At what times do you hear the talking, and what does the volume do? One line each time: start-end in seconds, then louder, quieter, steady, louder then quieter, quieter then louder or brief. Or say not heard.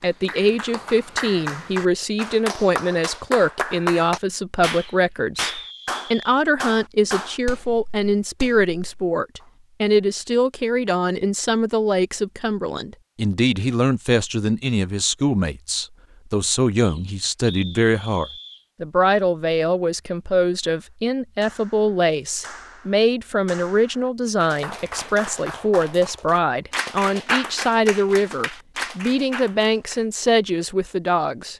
0.0-31.5 steady.